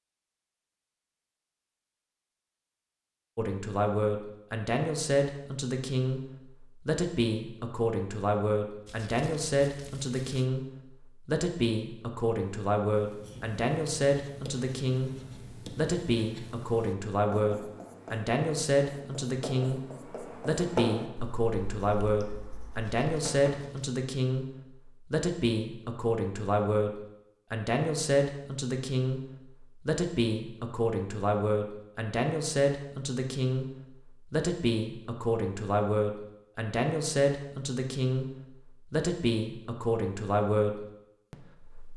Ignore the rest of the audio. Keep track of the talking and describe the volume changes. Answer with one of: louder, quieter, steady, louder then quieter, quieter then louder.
steady.